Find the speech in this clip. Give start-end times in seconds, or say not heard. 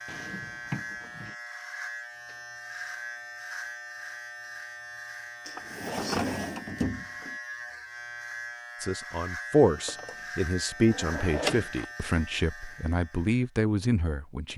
8.8-14.5.